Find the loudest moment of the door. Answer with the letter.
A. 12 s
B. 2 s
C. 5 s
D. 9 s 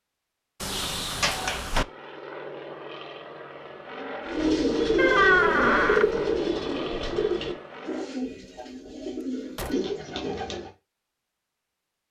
C.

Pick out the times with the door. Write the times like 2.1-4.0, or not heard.
0.6-1.9, 5.0-6.0, 8.2-9.9.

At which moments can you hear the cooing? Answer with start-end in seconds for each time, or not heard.
4.2-10.7.